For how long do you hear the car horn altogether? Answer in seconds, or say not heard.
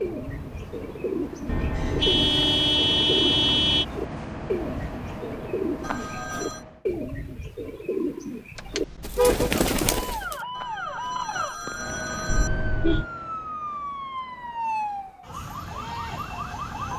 4 s.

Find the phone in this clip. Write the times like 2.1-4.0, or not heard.
5.8-6.6, 10.6-12.5.